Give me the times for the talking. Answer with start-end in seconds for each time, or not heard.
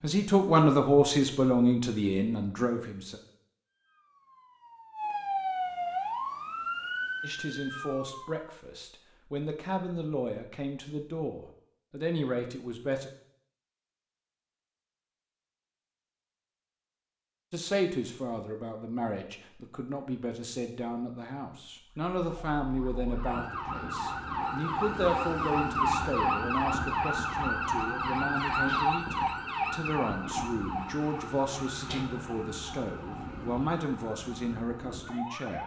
0.0-3.2, 7.2-13.1, 17.5-35.6.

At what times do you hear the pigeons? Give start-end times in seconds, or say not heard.
not heard.